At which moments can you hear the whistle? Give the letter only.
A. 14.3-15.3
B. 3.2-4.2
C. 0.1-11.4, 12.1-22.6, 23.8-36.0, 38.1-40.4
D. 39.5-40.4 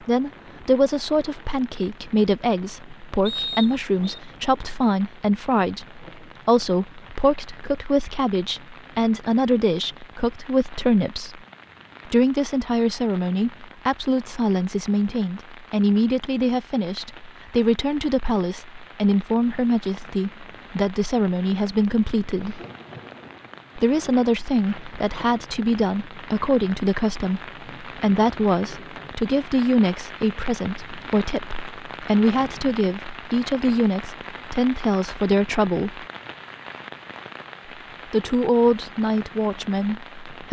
B.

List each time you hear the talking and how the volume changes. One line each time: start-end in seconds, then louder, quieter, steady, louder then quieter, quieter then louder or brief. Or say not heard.
0.1-11.4 steady
12.1-22.6 steady
23.8-36.0 steady
38.1-40.4 brief.